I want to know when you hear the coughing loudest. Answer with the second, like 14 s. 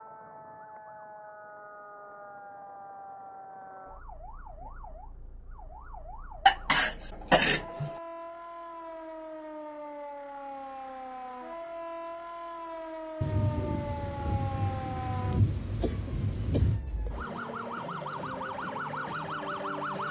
7 s.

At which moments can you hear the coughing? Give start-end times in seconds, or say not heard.
6.5-7.9, 15.8-17.3.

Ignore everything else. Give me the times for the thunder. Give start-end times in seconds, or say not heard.
13.2-16.8.